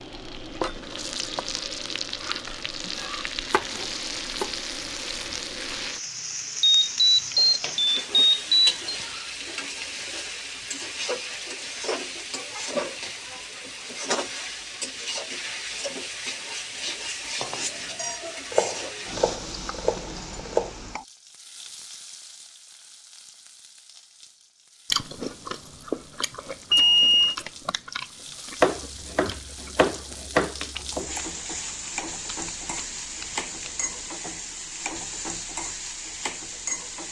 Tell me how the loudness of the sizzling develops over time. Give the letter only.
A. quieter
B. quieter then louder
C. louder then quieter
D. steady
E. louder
B.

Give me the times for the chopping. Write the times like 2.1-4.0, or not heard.
2.9-4.5, 18.5-20.7, 28.6-31.2.